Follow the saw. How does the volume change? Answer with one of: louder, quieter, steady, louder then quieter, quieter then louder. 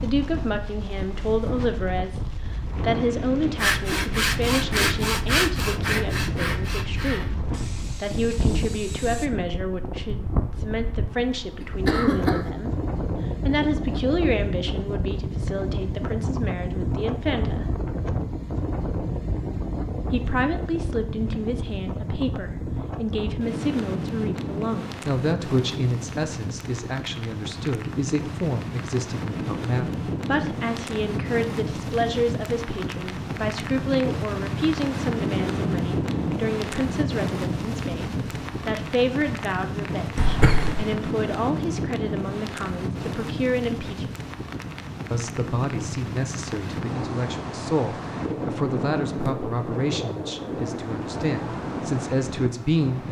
quieter.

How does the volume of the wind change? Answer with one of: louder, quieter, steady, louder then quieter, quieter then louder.
steady.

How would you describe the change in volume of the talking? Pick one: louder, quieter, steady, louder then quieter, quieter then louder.
steady.